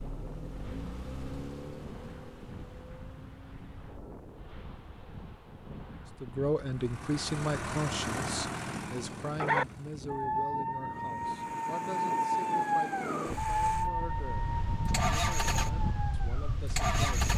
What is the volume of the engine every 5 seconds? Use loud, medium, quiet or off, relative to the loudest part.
quiet, medium, quiet, loud.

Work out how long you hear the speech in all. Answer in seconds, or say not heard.
11 s.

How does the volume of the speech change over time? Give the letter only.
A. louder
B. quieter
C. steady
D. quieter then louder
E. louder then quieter
B.